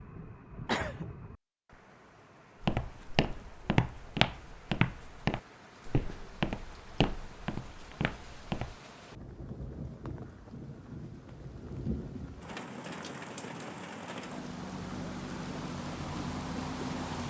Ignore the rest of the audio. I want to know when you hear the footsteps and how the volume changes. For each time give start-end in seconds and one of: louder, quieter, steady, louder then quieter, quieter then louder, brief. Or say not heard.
2.6-8.8 quieter.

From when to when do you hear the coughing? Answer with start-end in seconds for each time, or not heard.
0.7-1.1.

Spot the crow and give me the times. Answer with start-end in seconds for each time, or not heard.
not heard.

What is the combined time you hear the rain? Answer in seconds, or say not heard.
17 s.